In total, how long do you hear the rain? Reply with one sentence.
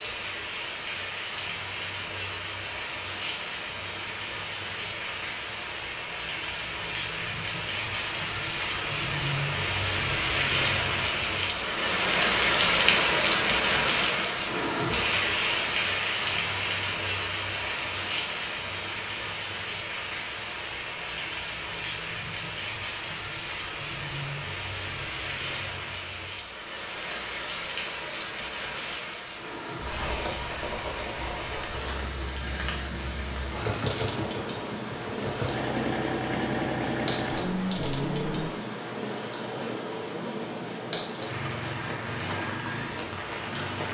The rain can be heard for 44 seconds in total.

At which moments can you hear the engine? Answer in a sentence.
The engine can be heard from 33.5 to 38.5 s.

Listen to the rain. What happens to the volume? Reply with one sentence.
The loudness of the rain goes up, then down.